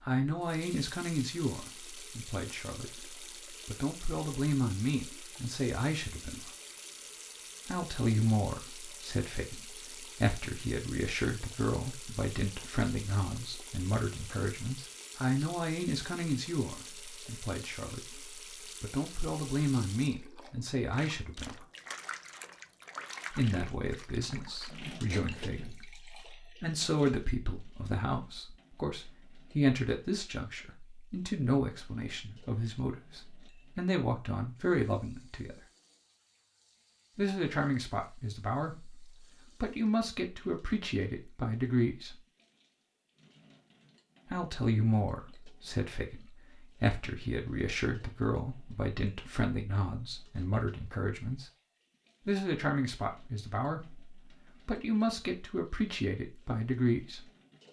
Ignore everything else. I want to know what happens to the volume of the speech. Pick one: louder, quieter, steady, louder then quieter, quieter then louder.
steady.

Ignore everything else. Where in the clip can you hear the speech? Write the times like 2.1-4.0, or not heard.
0.0-6.5, 7.7-21.6, 23.3-35.6, 37.1-42.2, 44.3-51.5, 52.2-57.2.